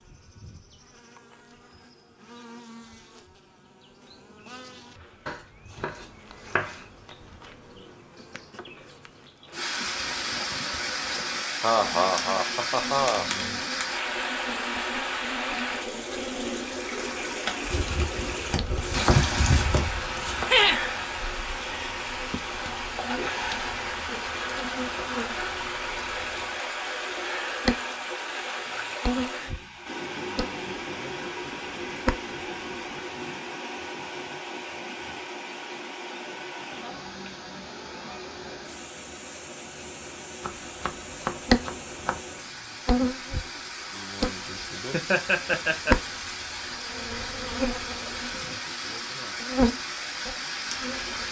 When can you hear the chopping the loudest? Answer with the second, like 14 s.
19 s.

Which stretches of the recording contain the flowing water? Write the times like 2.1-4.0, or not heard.
9.5-51.2.